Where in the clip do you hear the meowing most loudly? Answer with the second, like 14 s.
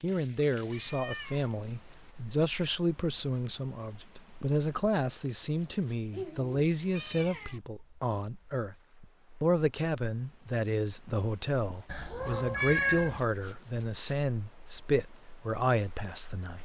13 s.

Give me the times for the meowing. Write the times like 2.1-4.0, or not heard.
0.1-1.6, 6.1-7.6, 11.8-13.2.